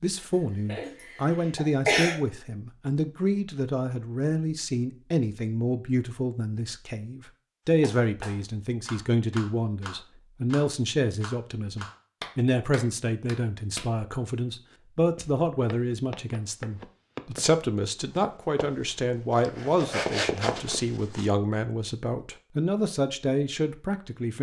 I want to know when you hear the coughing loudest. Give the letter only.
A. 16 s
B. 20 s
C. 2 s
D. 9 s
C.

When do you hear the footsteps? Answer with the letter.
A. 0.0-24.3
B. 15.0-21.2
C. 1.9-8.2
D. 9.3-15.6
B.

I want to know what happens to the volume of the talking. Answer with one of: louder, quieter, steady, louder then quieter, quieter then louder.
steady.